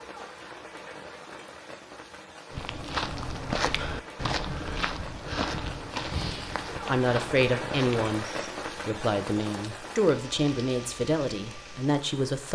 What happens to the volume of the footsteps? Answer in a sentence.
The volume of the footsteps goes down.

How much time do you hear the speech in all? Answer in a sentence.
The speech can be heard for 5 seconds in total.